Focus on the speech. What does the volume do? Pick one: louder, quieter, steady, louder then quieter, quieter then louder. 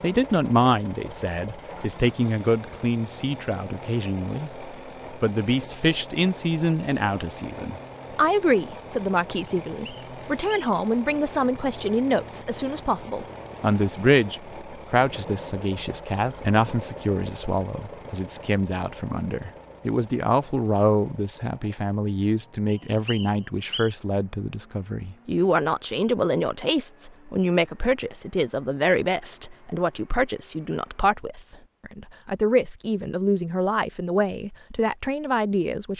steady.